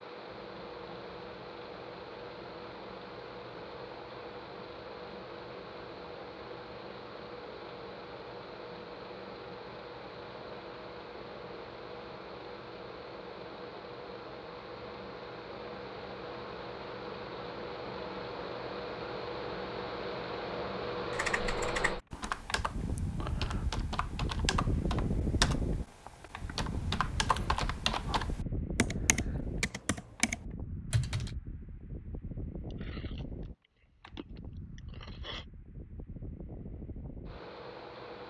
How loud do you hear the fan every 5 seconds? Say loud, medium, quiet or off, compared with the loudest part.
medium, medium, medium, loud, loud, loud, medium, medium.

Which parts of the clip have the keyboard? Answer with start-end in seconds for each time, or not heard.
21.1-31.4.